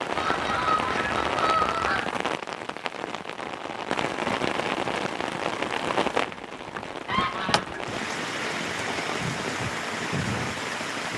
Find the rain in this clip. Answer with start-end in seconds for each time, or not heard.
0.0-11.1.